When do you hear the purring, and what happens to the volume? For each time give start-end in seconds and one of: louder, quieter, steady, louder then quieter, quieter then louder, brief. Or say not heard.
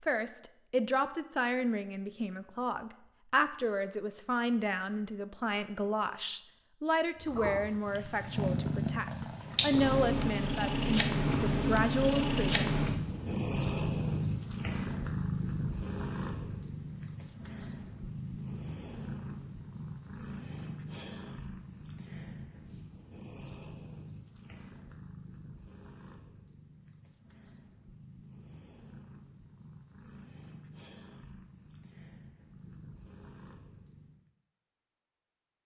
7.2-34.3 quieter.